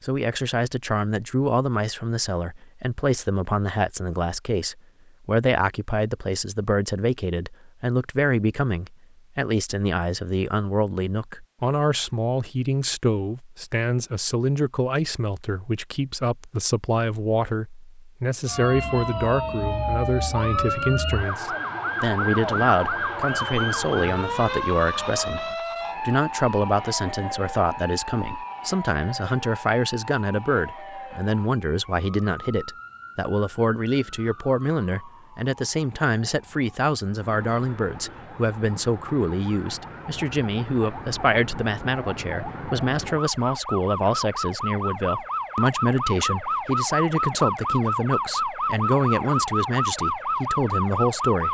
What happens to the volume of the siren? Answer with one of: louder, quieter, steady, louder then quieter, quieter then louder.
quieter then louder.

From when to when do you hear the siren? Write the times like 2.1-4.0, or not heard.
18.4-51.5.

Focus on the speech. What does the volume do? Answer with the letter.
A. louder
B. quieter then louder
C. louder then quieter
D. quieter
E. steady
E.